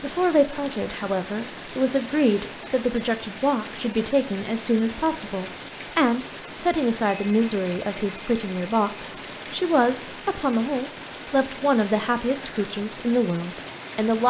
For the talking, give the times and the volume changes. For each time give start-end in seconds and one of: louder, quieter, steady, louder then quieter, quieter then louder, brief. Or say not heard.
0.0-14.2 steady.